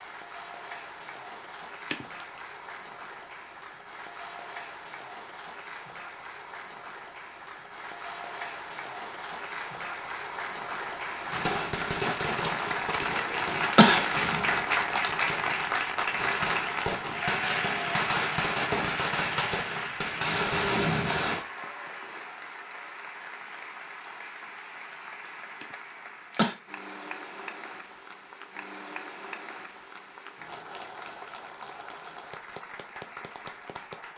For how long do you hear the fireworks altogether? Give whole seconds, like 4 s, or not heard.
10 s.